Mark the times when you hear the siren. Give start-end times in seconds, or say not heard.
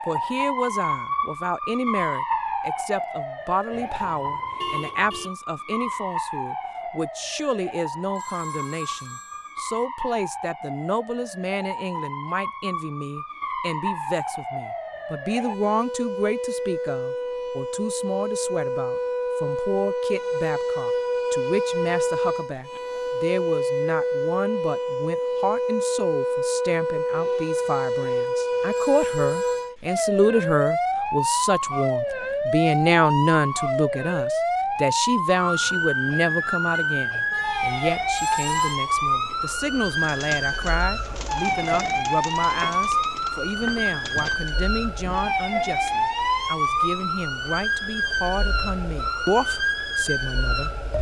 0.0-50.9.